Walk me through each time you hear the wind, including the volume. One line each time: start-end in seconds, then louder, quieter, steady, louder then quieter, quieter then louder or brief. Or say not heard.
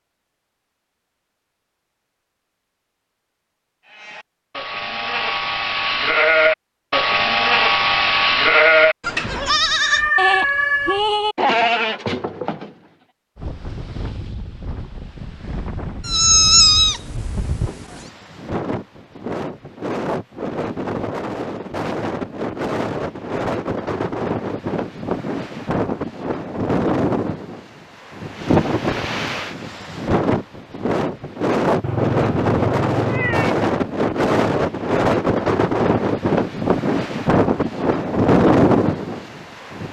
13.3-39.8 louder.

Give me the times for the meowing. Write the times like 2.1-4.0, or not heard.
9.8-11.0, 16.1-18.0, 31.8-33.5.